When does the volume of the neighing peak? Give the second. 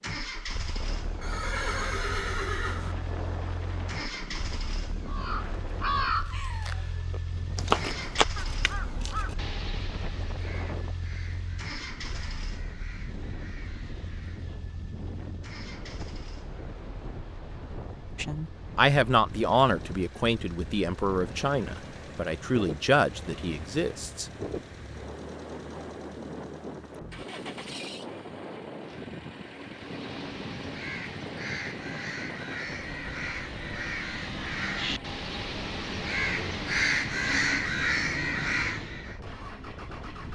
2 s.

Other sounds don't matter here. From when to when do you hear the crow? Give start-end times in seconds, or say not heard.
5.0-14.6, 29.8-39.2.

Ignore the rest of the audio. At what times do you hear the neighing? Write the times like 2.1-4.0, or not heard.
1.2-3.0.